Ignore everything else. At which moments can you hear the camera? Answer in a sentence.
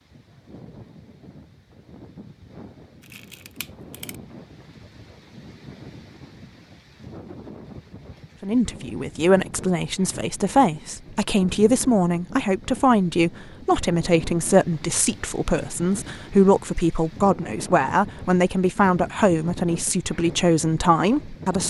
You can hear the camera from 3.0 to 4.2 s.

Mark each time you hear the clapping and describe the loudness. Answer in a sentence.
The clapping can't be heard in this clip.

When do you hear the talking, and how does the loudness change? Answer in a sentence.
The talking can be heard from 8.4 to 21.6 s, at a steady volume.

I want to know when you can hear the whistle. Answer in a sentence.
The whistle can't be heard in this clip.